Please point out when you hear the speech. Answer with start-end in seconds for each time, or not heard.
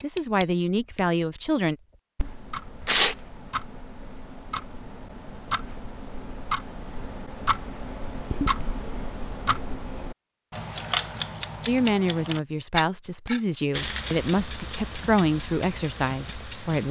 0.0-1.8, 11.7-16.8.